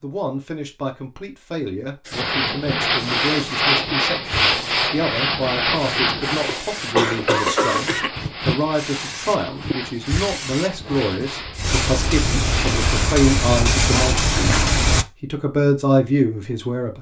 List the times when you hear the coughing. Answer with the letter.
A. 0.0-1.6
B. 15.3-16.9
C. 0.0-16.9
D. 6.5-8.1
D.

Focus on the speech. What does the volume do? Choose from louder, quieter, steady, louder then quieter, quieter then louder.
louder.